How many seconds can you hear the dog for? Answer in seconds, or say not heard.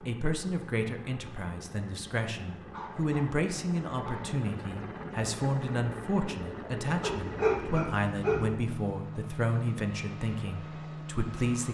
3 s.